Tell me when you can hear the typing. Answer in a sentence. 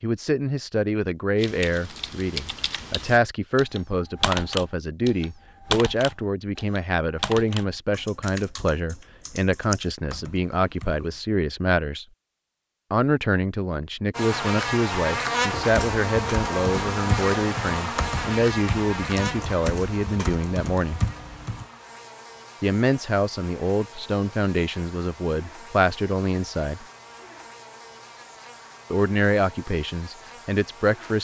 You can hear the typing from 1.4 to 11.2 s and from 15.7 to 21.6 s.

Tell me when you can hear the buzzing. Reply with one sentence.
You can hear the buzzing from 14.1 to 31.1 s.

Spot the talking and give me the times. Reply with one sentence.
You can hear the talking from 0.0 to 12.1 s, from 12.9 to 21.0 s, from 22.6 to 26.9 s and from 28.9 to 31.1 s.